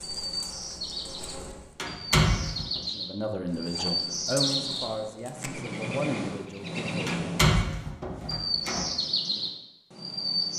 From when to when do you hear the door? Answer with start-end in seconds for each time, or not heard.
1.8-2.8, 7.0-8.8.